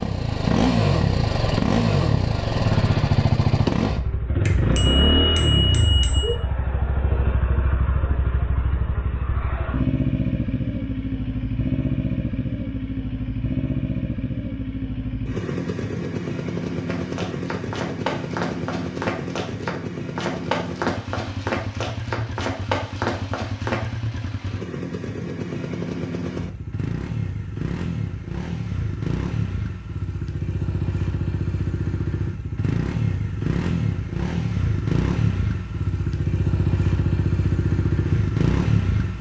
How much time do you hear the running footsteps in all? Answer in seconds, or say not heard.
7 s.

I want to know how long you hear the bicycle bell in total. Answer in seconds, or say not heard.
2 s.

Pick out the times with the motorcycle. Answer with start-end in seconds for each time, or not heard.
0.0-39.1.